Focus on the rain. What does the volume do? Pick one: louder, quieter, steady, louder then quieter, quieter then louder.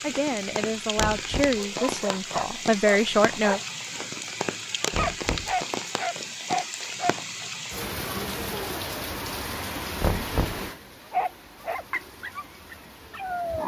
quieter.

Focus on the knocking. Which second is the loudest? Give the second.
10 s.